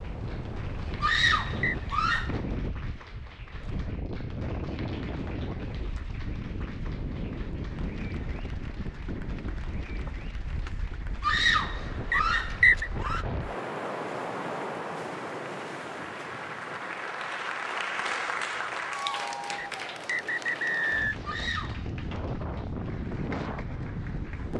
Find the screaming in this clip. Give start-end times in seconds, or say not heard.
1.0-2.4, 11.2-13.2, 21.2-21.9.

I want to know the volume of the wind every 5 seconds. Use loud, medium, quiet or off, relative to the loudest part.
loud, loud, loud, medium, loud.